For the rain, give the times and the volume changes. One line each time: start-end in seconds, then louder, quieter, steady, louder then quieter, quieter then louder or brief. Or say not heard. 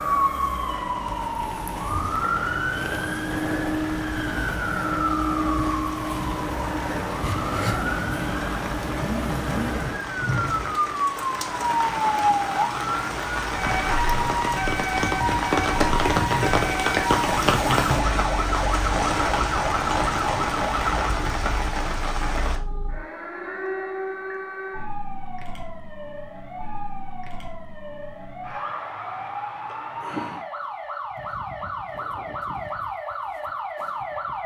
0.0-22.6 louder.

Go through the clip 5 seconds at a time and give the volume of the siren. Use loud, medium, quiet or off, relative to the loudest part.
loud, loud, loud, loud, medium, medium, medium.